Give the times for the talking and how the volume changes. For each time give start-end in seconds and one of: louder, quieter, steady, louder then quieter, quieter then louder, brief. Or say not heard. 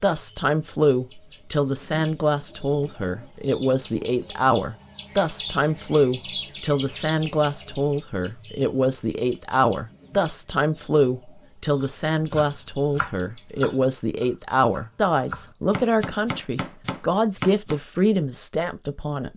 0.0-19.3 steady.